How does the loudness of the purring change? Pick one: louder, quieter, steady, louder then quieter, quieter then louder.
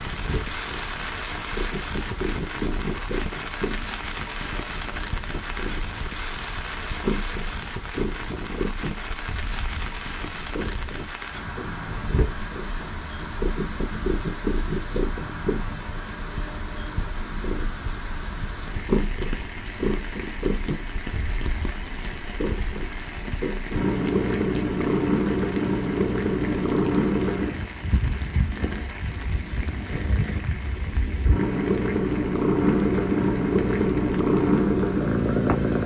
louder.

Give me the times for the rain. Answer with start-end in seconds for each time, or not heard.
0.0-35.8.